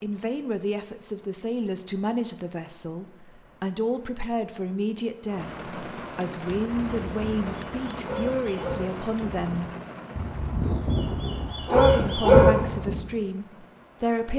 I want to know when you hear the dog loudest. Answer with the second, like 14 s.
12 s.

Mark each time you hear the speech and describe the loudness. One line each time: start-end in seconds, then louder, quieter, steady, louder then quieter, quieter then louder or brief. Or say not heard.
0.0-9.7 steady
11.6-14.3 brief.